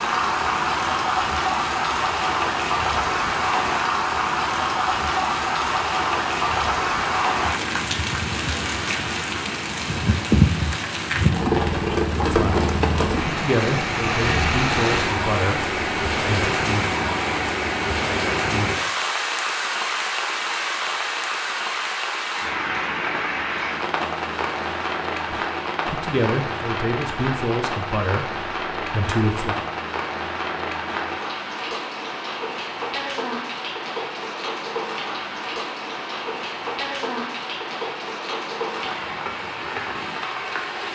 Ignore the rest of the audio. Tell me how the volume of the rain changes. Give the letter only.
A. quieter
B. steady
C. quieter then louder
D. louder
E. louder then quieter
A.